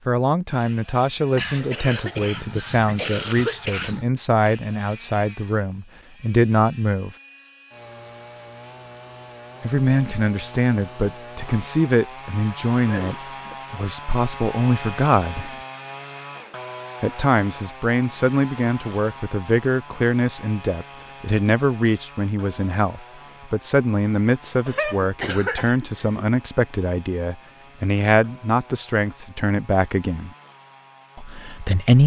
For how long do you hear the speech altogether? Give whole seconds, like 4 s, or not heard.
27 s.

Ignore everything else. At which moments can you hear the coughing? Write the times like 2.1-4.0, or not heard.
1.4-4.0, 12.8-13.6, 24.6-26.2.